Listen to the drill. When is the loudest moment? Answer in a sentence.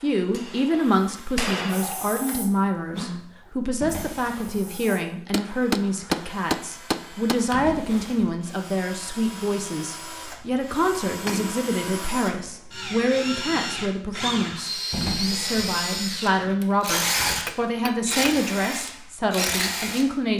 The loudest moment of the drill is at 17 seconds.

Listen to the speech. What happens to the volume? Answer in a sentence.
The volume of the speech stays about the same.